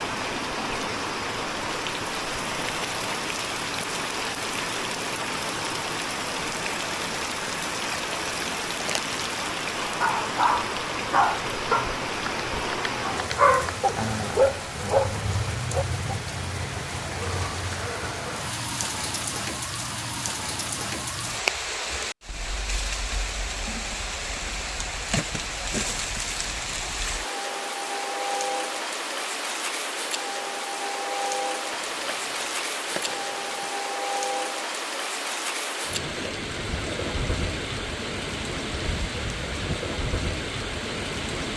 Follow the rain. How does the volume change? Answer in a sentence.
The volume of the rain stays about the same.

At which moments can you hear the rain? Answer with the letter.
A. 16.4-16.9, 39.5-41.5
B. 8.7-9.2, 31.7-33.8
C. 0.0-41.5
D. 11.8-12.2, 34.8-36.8
C.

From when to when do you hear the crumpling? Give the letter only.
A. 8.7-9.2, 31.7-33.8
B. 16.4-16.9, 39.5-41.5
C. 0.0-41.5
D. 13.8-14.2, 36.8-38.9
A.